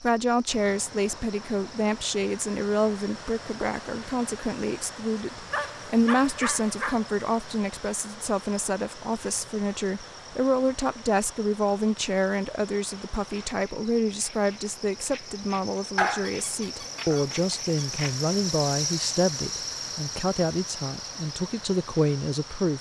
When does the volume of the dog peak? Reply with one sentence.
The volume of the dog peaks at 16 seconds.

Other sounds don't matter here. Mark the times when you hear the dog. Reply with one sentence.
You can hear the dog from 5.5 to 7.0 s and from 15.9 to 17.9 s.